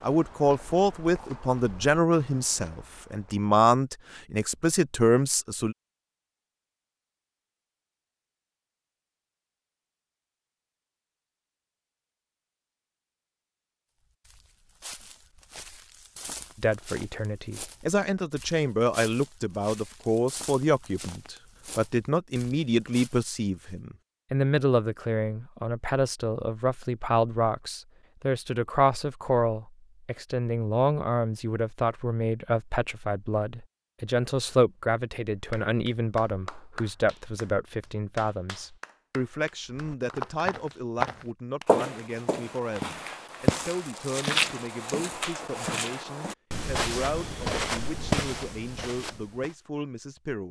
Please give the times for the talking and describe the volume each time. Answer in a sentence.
The talking can be heard from 0.0 to 5.8 s, getting quieter then louder; and from 16.6 to 50.4 s, getting quieter.